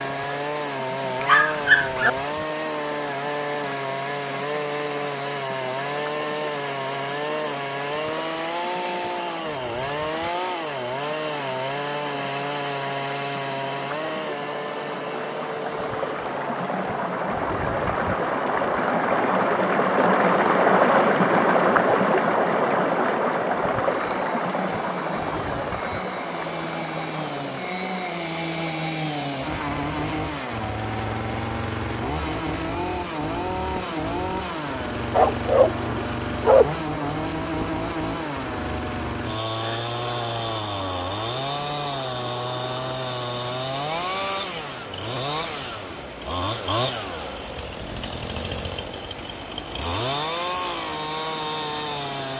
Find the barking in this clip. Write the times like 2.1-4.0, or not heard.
1.2-2.1, 35.1-37.1.